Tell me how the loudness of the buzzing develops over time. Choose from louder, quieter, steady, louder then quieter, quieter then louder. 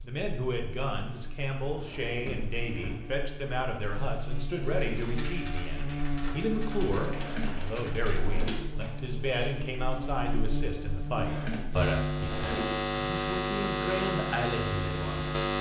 louder.